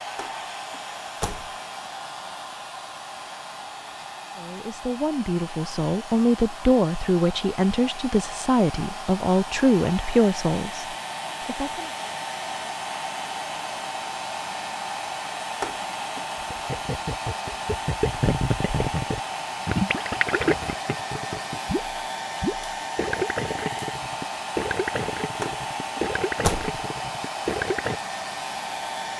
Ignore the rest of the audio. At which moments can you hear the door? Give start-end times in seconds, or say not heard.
0.1-1.6, 15.6-16.2, 25.4-26.7.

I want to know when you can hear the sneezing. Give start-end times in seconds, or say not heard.
not heard.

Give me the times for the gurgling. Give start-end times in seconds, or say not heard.
16.4-28.0.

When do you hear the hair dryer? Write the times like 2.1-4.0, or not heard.
0.0-29.1.